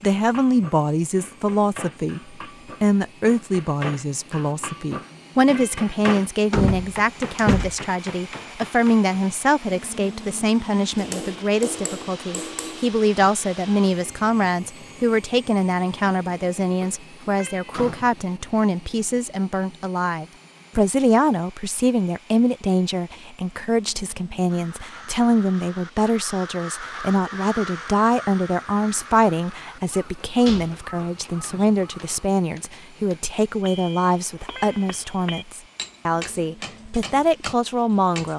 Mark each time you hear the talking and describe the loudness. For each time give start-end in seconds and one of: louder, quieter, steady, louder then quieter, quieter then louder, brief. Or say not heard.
0.0-38.3 steady.